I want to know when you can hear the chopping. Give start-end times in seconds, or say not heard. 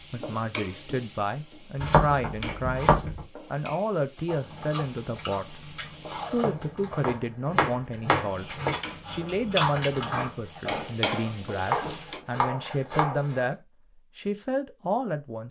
1.8-3.2, 6.4-8.8, 11.7-13.5.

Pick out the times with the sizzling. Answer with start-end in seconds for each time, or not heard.
0.0-6.3, 8.6-12.2.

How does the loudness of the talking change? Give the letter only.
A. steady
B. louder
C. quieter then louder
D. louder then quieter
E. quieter
A.